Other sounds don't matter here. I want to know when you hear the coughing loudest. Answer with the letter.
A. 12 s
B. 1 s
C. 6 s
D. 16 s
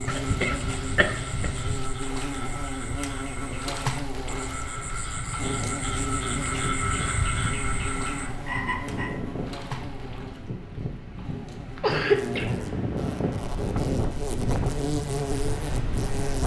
A.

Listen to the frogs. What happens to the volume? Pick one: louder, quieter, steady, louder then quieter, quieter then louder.
louder.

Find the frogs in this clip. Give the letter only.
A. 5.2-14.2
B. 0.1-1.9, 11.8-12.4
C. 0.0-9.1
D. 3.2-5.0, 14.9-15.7
C.